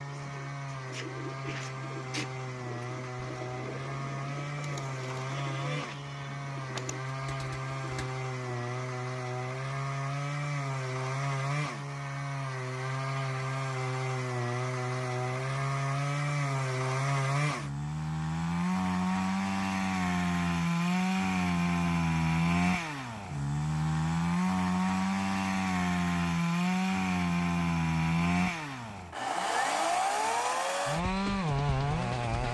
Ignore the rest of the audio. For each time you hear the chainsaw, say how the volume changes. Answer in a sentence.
You can hear the chainsaw from 0.0 to 32.5 s, getting louder.